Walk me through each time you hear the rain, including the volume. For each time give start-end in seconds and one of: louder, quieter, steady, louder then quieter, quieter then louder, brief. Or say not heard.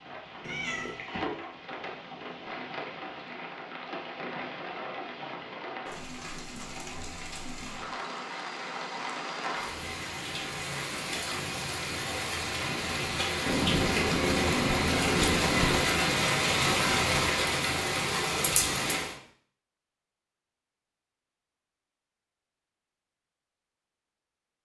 0.0-19.1 louder.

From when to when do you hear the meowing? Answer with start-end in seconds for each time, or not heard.
0.4-1.0, 13.4-15.8.